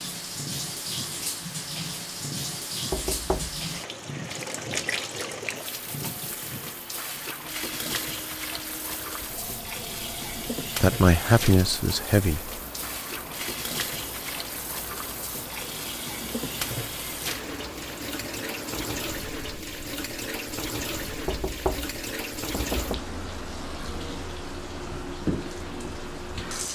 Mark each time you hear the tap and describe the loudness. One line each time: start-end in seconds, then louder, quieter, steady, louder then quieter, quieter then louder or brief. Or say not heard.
0.0-26.6 steady.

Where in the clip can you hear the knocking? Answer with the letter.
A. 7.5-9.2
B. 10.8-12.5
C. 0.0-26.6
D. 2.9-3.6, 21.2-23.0
D.